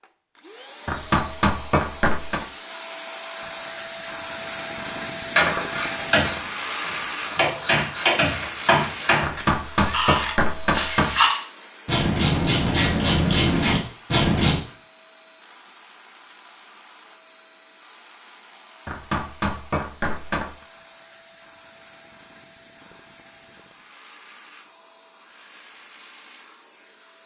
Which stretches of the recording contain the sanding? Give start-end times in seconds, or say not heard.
not heard.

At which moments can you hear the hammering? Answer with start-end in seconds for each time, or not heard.
0.8-2.5, 9.2-11.2, 18.9-20.6.